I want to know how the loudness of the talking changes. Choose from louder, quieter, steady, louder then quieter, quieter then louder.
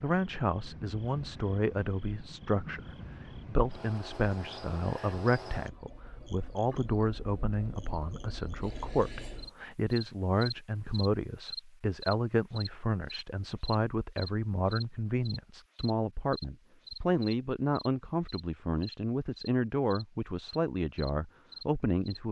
steady.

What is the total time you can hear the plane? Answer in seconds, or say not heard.
not heard.